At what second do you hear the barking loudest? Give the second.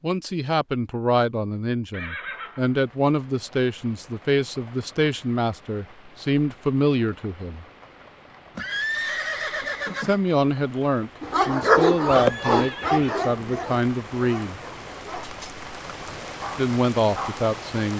12 s.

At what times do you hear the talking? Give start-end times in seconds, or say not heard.
0.0-7.7, 10.0-14.6, 16.6-17.9.